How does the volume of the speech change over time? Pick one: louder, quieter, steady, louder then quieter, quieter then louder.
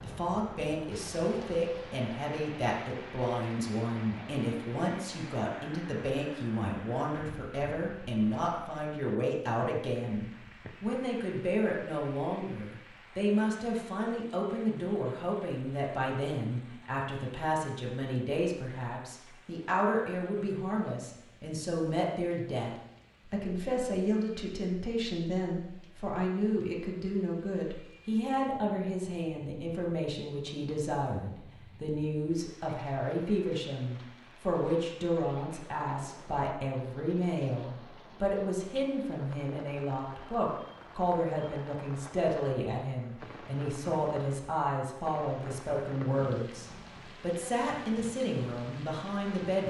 steady.